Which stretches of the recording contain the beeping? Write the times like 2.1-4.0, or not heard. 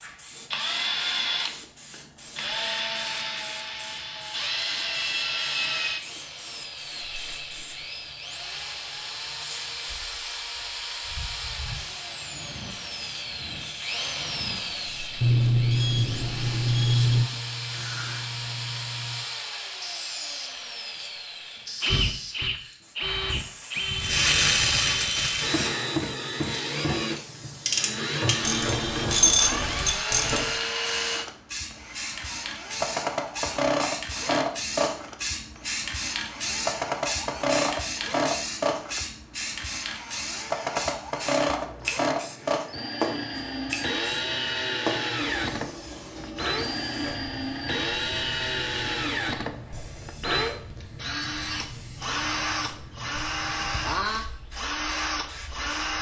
15.2-17.3.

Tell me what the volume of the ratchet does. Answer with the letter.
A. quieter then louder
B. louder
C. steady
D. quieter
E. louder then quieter
A.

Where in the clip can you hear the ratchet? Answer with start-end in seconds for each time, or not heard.
24.0-30.5.